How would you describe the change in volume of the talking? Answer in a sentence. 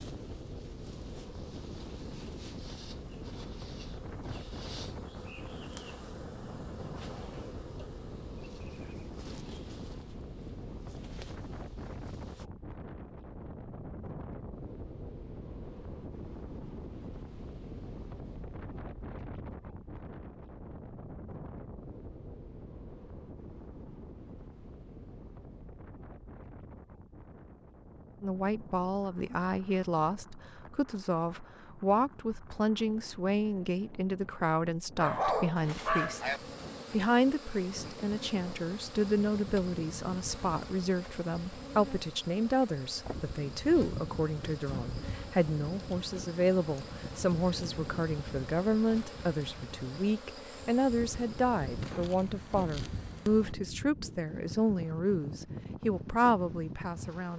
The loudness of the talking stays about the same.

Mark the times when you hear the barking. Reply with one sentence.
You can hear the barking from 35.0 to 36.4 s.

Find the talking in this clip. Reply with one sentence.
The talking can be heard from 28.2 to 36.2 s and from 36.9 to 57.3 s.